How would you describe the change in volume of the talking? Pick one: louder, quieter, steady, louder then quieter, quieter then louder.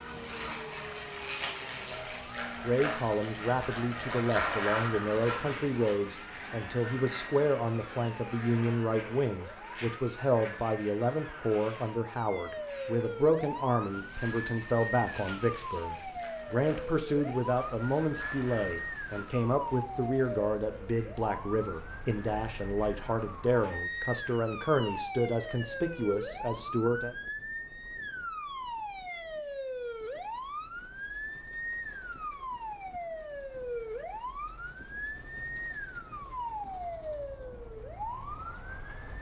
steady.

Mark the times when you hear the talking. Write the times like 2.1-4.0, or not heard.
2.6-27.1.